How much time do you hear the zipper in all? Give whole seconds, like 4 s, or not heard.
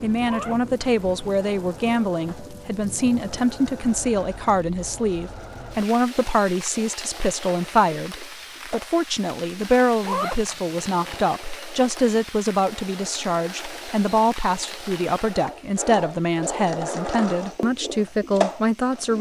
2 s.